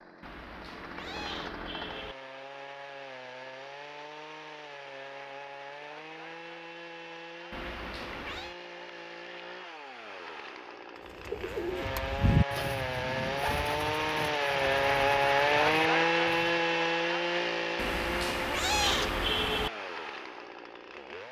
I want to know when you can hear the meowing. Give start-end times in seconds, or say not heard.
0.2-2.1, 7.5-8.6, 17.8-19.7.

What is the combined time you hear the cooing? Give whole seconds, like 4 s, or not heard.
5 s.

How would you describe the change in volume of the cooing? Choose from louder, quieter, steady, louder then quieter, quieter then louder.
quieter.